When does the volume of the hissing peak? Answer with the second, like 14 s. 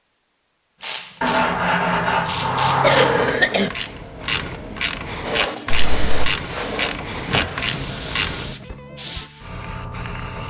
6 s.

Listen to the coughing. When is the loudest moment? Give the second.
3 s.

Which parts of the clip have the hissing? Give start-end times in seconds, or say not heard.
5.2-10.4.